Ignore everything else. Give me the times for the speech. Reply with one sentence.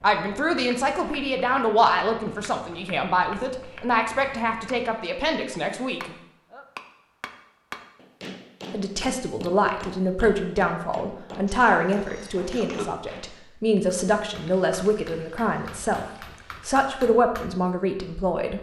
You can hear the speech from 0.0 to 6.2 s and from 8.7 to 18.5 s.